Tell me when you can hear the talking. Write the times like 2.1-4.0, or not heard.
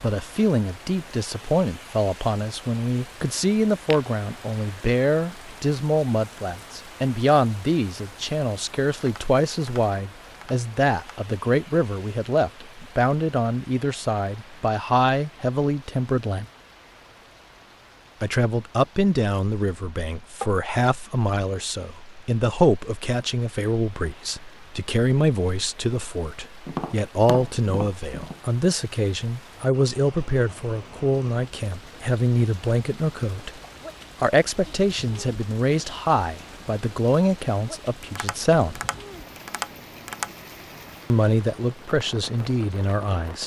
0.0-16.4, 18.2-33.6, 34.2-38.8, 41.1-43.4.